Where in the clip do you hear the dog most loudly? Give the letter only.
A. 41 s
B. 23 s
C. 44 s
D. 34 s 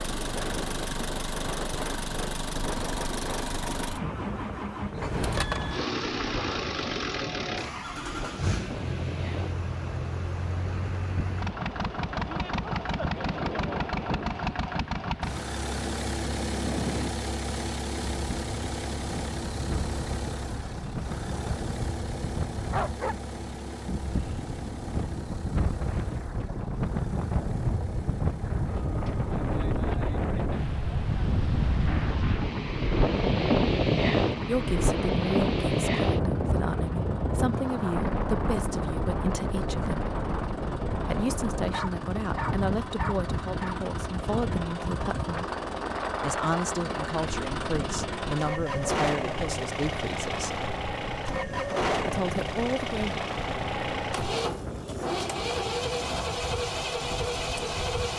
B.